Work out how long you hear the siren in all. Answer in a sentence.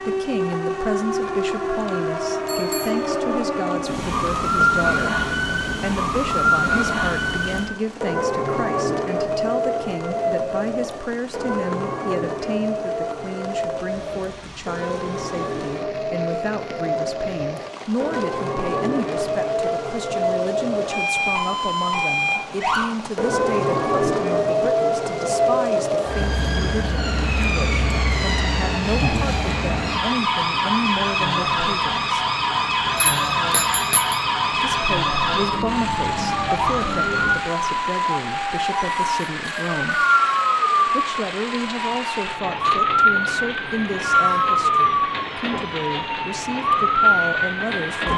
You can hear the siren for 48 seconds altogether.